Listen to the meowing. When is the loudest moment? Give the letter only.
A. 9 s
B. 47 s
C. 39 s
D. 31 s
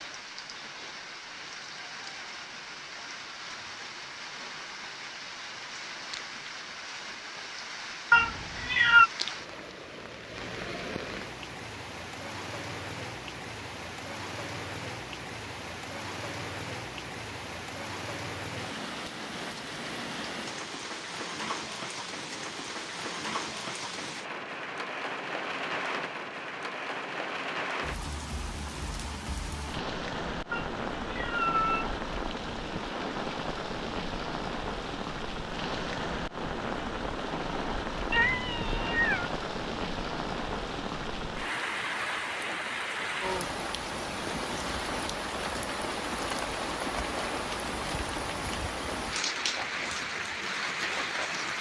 A.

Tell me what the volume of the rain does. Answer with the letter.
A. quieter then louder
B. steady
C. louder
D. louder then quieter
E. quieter
C.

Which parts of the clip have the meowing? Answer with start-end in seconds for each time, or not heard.
8.1-9.1, 30.5-31.9, 38.1-39.3.